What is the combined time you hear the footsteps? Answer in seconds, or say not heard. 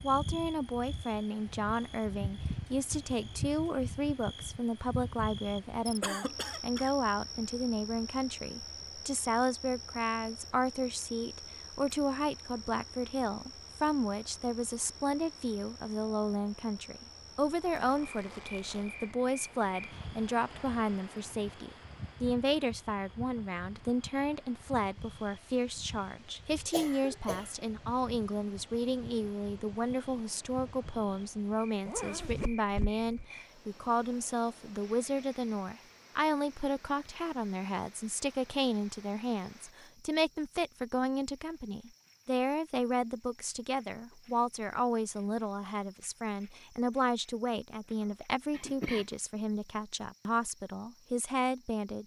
not heard.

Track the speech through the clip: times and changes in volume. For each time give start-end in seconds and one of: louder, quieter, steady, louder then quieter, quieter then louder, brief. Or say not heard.
0.0-52.0 steady.